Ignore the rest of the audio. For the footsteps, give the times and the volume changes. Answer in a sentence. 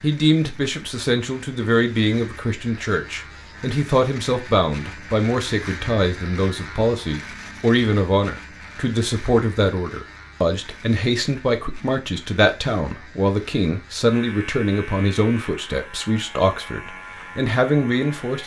You can't hear the footsteps here.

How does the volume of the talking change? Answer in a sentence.
The volume of the talking stays about the same.